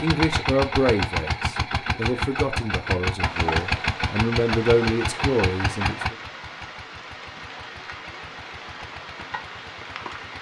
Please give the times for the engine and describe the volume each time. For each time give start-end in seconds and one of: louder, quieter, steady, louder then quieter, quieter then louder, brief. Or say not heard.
0.0-10.3 quieter.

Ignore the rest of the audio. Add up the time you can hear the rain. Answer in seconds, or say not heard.
7 s.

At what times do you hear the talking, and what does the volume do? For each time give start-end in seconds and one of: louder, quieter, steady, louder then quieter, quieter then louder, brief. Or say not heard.
0.0-6.2 quieter then louder.